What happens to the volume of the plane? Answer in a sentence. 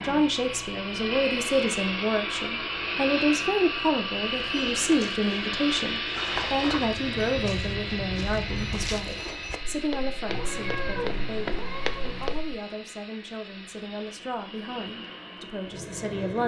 The volume of the plane goes down.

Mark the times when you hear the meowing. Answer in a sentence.
You can hear the meowing from 10.2 to 12.3 s.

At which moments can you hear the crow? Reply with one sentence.
The crow can't be heard in this clip.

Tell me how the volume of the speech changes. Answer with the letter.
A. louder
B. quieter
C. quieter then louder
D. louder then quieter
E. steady
B.